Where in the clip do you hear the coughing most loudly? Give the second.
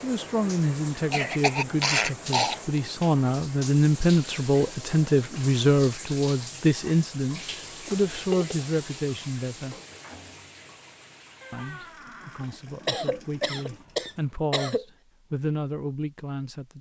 2 s.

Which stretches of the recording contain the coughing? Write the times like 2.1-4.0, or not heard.
1.1-2.8, 7.8-8.7, 12.4-14.8.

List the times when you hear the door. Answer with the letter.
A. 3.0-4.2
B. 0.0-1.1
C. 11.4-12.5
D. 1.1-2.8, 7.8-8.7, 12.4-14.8
C.